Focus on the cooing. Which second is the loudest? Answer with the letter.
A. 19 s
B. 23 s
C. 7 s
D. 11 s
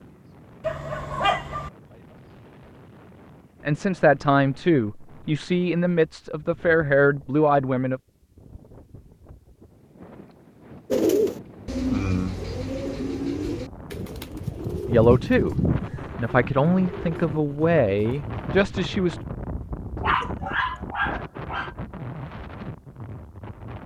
D.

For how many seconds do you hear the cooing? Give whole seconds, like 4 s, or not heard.
8 s.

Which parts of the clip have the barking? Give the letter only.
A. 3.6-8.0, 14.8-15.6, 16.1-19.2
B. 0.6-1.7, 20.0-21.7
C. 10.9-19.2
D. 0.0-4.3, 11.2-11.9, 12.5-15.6
B.